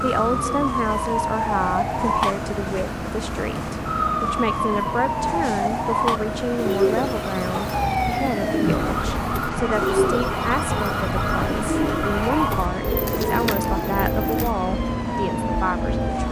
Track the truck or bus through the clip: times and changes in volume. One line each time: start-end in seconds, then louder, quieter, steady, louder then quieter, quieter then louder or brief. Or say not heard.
0.0-16.2 steady.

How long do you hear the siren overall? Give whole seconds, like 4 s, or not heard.
16 s.